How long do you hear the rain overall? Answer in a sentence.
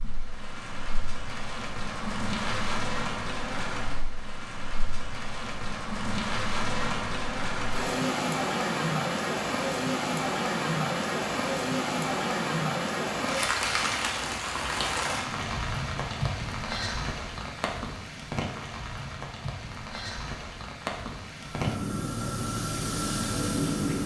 The rain can be heard for 24 seconds in total.